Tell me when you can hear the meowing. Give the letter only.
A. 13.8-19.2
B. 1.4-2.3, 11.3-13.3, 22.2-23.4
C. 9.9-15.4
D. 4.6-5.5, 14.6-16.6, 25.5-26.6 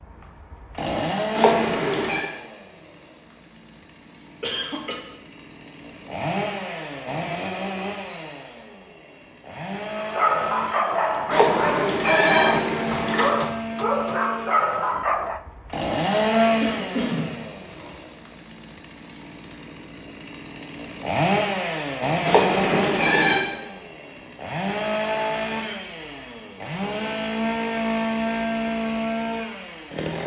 B.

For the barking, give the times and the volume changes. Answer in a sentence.
The barking can be heard from 9.9 to 15.4 s, at a steady volume.